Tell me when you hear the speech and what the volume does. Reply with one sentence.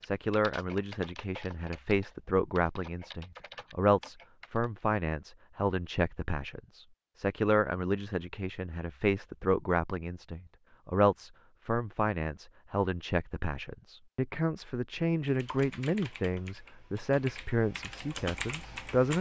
The speech can be heard from 0.0 to 19.1 s, at a steady volume.